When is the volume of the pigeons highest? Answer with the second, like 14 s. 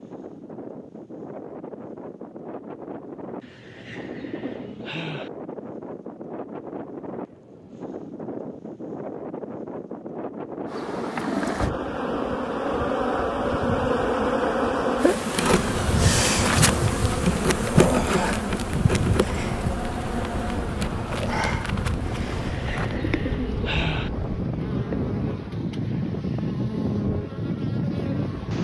24 s.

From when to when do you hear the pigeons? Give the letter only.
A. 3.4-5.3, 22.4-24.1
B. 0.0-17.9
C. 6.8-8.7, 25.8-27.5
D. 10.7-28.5
A.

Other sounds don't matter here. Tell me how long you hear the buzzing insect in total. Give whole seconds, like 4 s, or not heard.
18 s.